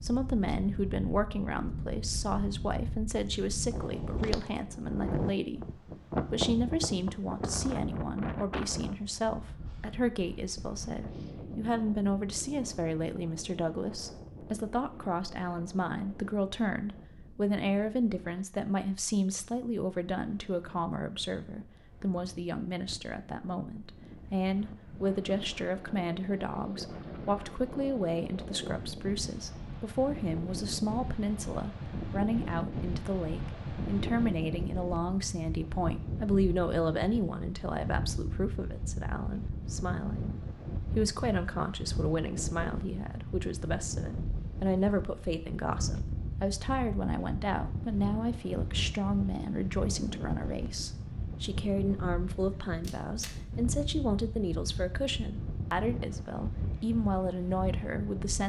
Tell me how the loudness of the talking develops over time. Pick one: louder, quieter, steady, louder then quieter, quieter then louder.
steady.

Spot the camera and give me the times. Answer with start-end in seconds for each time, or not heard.
52.8-53.4.